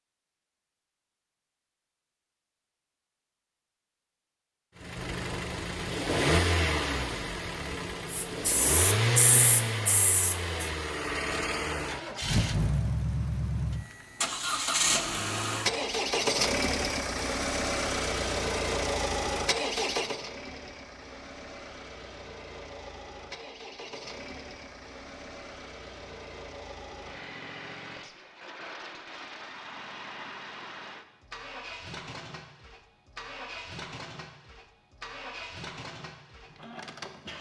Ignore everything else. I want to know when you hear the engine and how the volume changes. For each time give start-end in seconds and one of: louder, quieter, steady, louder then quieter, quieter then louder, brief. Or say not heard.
4.8-37.3 quieter.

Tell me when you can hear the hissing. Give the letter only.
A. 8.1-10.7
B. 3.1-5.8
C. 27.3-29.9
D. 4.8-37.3
A.